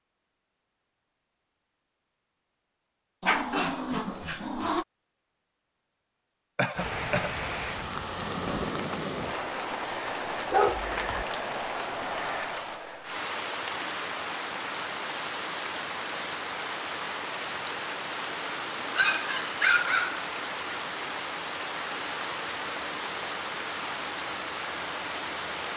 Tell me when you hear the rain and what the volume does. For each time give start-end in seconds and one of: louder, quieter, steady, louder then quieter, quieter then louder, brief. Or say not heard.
6.7-25.7 steady.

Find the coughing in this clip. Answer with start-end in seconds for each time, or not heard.
6.5-7.3.